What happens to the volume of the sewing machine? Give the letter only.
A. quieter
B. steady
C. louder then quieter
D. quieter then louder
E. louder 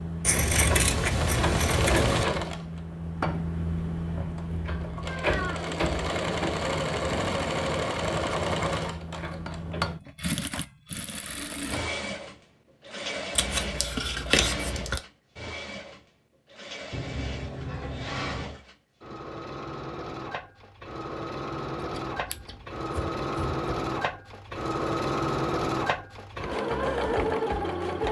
D.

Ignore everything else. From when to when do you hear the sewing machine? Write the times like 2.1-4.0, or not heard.
0.0-28.0.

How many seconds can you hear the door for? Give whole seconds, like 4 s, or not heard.
2 s.